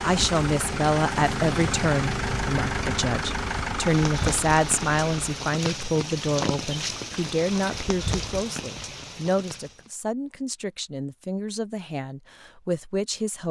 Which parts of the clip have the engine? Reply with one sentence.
The engine can be heard from 0.0 to 5.5 s.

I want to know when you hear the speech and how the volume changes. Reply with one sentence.
The speech can be heard from 0.0 to 13.4 s, getting quieter.